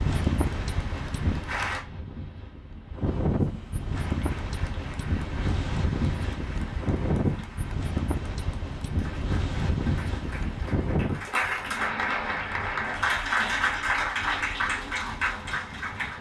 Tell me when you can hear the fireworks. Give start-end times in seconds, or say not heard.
not heard.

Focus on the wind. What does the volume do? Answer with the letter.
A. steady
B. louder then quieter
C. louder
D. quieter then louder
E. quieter
E.